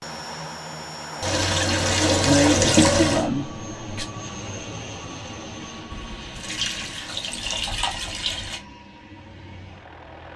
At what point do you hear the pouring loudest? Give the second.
3 s.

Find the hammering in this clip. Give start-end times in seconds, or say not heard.
not heard.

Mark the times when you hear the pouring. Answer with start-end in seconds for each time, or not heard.
1.2-3.2, 5.9-8.6.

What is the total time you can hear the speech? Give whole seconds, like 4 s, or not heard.
2 s.